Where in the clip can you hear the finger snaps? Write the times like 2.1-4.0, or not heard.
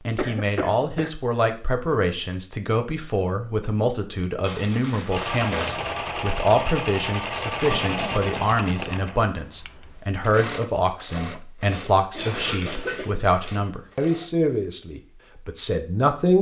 not heard.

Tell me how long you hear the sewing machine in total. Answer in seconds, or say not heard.
9 s.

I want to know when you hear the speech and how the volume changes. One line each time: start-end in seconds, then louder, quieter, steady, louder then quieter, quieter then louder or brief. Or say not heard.
0.1-16.3 steady.